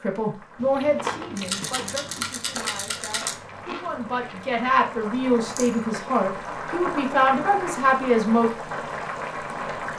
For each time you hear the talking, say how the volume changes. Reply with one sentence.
You can hear the talking from 0.0 to 8.5 s, getting quieter then louder.